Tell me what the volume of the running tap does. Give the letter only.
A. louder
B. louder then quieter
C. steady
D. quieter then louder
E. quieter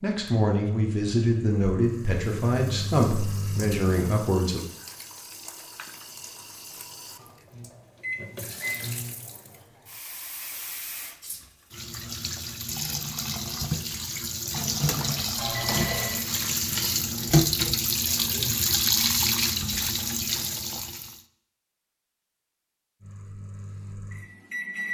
A.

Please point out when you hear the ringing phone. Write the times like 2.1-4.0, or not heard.
15.3-16.2.